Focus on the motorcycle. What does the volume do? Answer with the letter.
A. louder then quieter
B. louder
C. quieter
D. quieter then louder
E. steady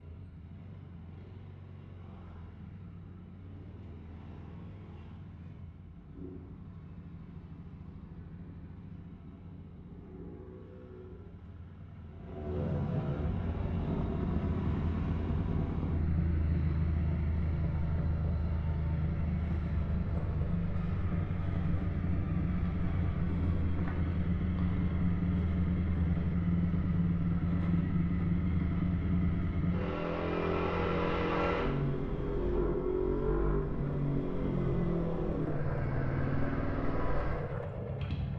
B.